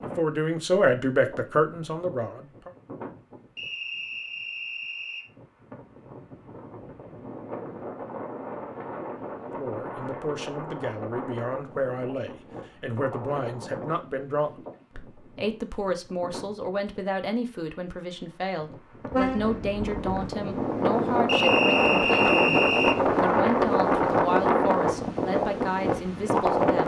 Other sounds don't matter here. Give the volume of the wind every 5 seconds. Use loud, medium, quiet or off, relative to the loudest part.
quiet, quiet, quiet, quiet, loud, loud.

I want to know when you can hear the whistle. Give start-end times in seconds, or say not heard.
3.5-5.2, 21.2-23.0.